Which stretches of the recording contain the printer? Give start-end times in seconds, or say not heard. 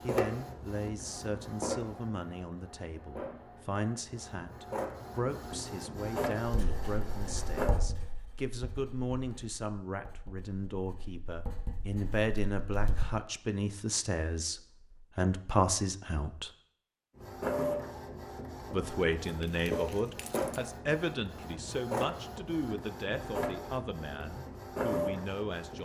0.0-7.8, 17.1-25.8.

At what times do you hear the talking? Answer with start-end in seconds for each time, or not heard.
0.0-16.5, 18.7-25.8.